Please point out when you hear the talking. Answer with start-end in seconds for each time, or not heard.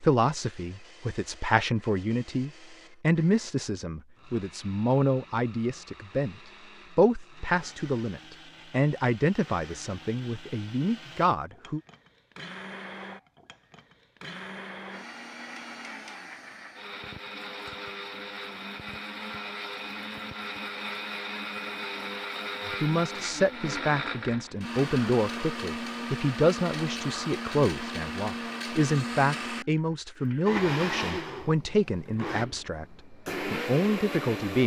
0.0-6.3, 7.0-11.8, 22.6-34.6.